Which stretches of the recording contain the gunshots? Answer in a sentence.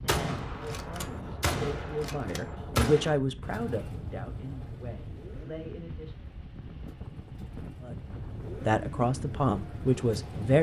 You can hear the gunshots from 0.1 to 3.1 s.